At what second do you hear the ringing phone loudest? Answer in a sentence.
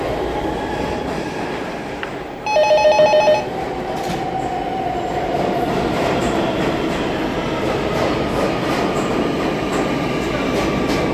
The volume of the ringing phone peaks at 3 seconds.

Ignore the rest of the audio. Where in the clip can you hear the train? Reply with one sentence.
The train can be heard from 0.0 to 11.0 s.